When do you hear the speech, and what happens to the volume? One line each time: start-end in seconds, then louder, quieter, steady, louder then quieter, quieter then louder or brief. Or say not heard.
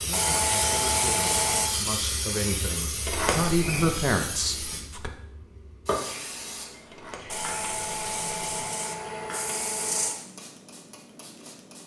0.0-5.1 louder.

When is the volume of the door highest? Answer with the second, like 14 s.
3 s.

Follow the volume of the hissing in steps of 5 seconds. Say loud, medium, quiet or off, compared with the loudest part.
loud, medium, quiet.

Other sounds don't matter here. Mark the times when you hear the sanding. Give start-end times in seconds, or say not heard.
0.1-1.7, 7.3-10.2.